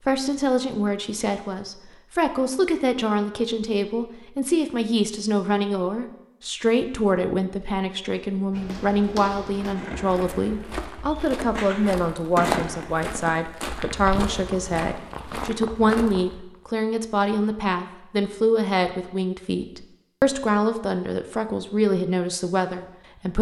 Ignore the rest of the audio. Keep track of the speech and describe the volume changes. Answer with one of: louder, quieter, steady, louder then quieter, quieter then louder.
steady.